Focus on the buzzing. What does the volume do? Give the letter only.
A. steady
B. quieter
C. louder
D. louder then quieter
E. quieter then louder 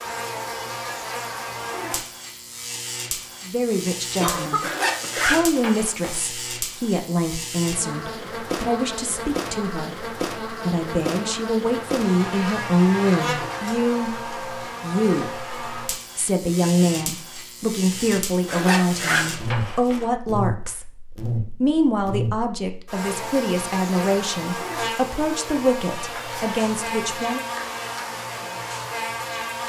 A.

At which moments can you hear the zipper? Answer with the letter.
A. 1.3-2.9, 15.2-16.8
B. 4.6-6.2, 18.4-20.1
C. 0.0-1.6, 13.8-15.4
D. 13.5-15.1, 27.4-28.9
B.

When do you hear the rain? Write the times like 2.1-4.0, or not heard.
not heard.